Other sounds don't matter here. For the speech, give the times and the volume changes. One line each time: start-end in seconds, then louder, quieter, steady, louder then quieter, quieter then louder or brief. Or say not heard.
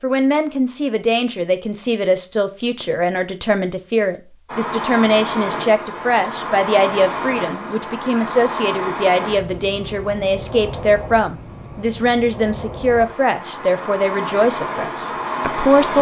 0.0-15.9 steady.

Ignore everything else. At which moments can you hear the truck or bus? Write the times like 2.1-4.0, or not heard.
4.5-15.9.